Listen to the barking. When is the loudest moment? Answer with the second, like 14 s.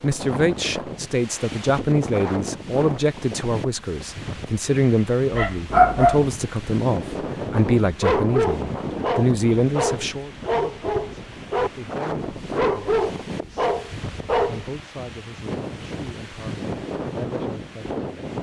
6 s.